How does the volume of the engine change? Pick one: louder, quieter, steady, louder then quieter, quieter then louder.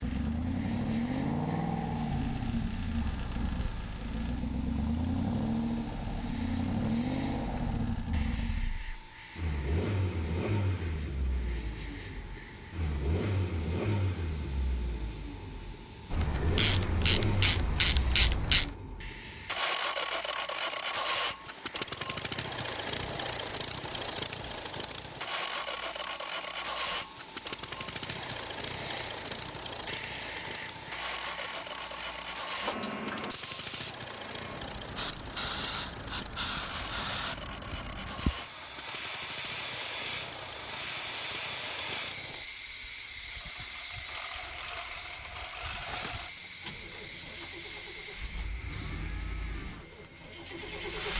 quieter.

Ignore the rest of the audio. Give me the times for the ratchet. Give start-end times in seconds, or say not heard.
16.1-18.7, 45.9-48.2.